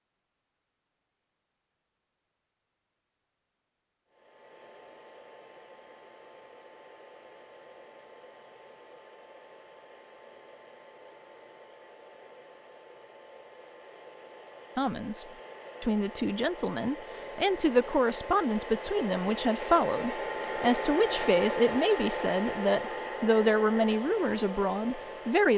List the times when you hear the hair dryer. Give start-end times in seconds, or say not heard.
4.0-25.5.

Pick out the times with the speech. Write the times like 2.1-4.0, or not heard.
14.8-25.5.